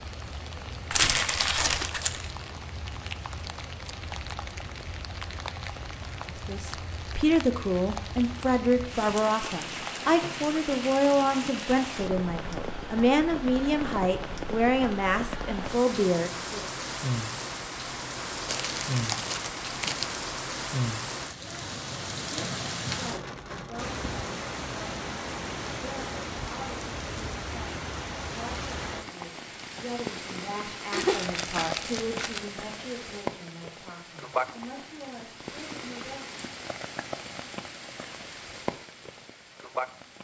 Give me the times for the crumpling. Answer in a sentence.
You can hear the crumpling from 0.9 to 2.4 s, from 18.4 to 20.2 s and from 30.9 to 32.5 s.